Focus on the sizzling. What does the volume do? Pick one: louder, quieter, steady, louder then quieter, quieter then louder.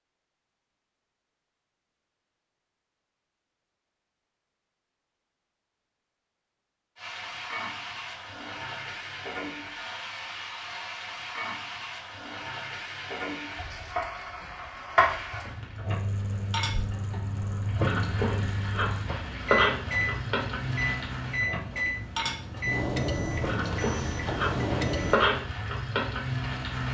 louder.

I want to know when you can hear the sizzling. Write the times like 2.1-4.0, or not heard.
7.0-26.8.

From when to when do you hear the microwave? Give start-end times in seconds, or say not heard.
15.8-25.2.